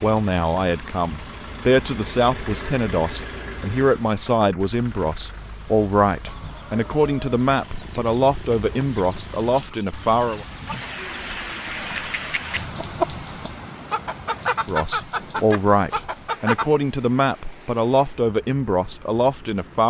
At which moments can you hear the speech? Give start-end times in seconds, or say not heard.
0.0-10.4, 14.7-19.8.